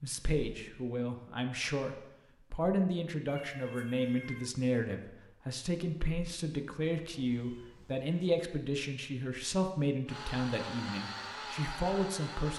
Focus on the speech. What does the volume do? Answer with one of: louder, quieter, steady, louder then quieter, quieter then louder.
steady.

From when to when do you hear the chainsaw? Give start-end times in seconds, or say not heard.
10.1-12.5.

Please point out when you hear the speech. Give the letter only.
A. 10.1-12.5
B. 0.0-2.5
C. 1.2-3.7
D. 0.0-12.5
D.